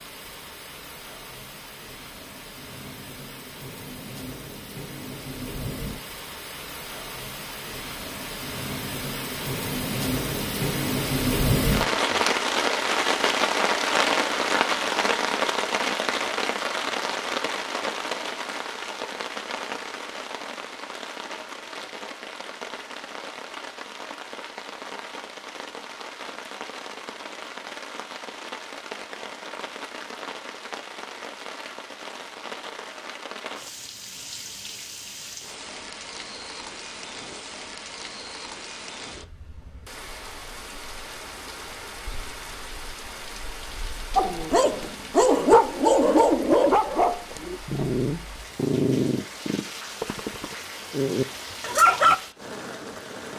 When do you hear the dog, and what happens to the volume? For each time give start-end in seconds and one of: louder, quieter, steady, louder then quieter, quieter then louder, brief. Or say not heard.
44.1-52.1 quieter.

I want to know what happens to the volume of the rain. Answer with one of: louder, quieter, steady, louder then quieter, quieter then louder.
louder then quieter.